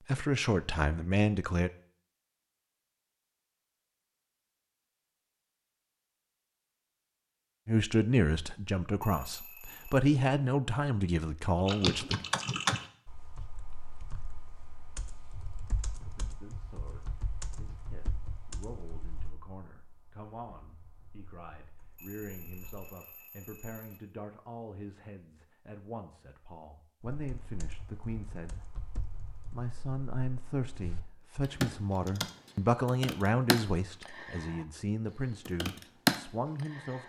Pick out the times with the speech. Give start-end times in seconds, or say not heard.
0.1-1.7, 7.7-12.2, 16.1-28.8, 29.5-37.0.